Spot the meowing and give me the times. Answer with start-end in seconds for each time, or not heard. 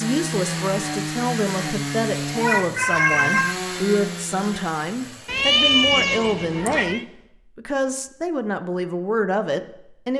2.4-3.5, 5.2-7.0.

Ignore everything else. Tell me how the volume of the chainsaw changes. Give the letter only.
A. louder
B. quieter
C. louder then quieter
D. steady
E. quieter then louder
B.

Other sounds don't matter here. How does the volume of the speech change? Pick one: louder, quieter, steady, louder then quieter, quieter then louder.
steady.